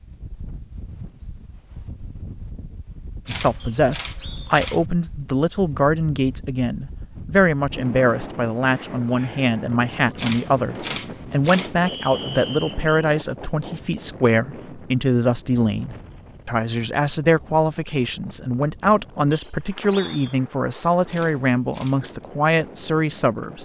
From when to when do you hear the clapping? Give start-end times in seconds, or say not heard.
not heard.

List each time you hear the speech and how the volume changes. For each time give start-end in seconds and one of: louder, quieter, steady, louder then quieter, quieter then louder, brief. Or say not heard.
3.2-23.6 steady.